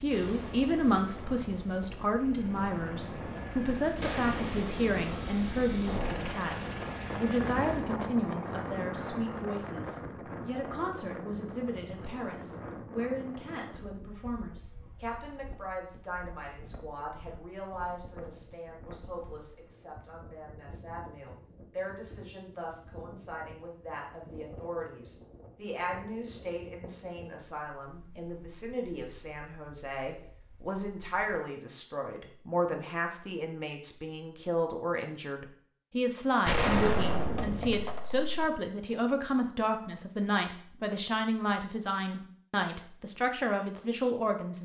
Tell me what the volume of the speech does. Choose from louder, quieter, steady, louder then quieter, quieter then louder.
quieter then louder.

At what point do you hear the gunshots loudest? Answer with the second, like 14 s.
37 s.